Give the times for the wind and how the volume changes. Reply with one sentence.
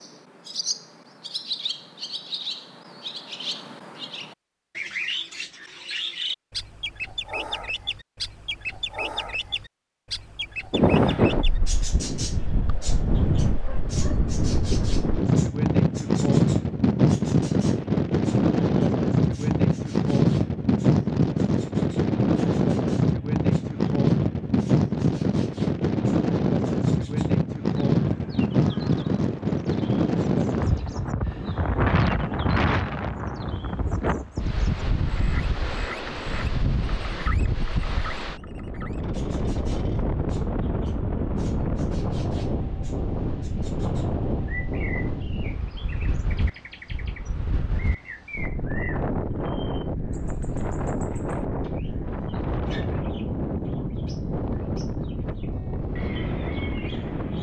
The wind can be heard from 10.7 to 57.3 s, getting quieter.